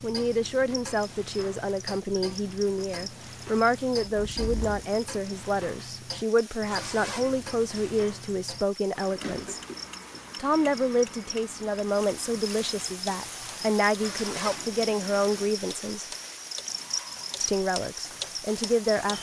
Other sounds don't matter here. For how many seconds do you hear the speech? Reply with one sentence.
The speech can be heard for 17 seconds in total.